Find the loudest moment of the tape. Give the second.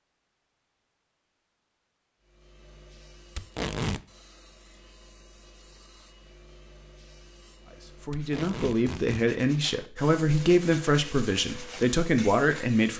4 s.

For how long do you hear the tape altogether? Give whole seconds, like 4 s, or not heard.
2 s.